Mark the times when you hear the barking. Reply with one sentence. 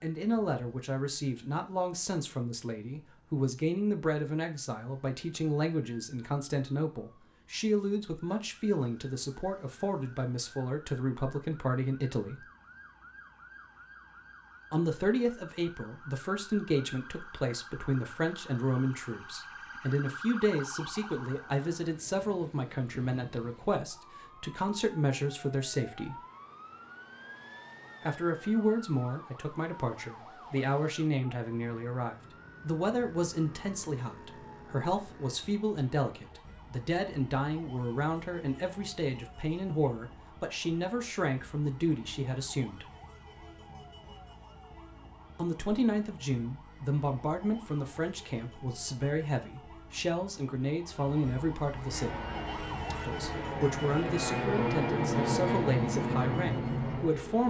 The barking can't be heard in this clip.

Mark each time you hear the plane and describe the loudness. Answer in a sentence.
You can hear the plane from 51.9 to 57.4 s, getting louder.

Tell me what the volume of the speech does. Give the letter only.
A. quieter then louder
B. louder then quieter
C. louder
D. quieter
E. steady
E.